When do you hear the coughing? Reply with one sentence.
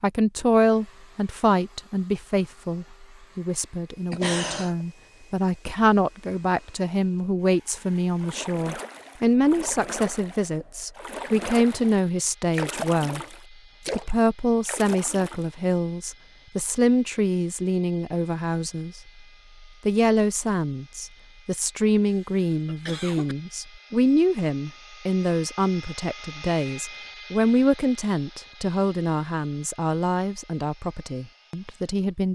The coughing can be heard from 4.1 to 4.8 s and from 21.9 to 23.4 s.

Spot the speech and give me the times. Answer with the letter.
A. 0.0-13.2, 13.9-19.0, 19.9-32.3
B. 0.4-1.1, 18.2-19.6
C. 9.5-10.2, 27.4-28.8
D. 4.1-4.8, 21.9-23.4
A.